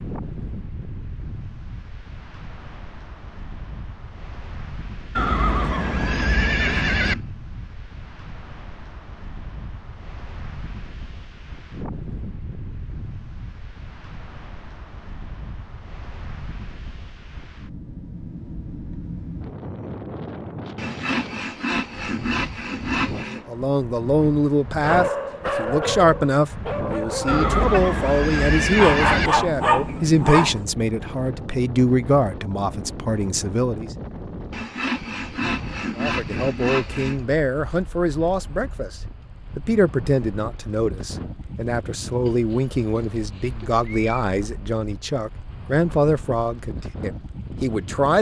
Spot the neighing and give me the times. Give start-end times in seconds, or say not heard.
5.2-7.2, 27.2-29.3, 42.5-44.2.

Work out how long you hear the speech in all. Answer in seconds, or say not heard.
23 s.